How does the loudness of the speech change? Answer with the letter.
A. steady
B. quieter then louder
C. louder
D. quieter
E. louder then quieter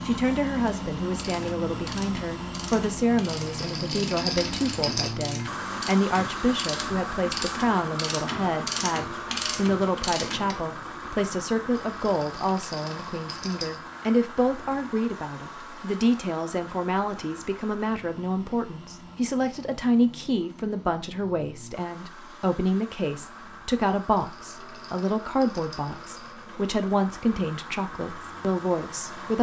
A.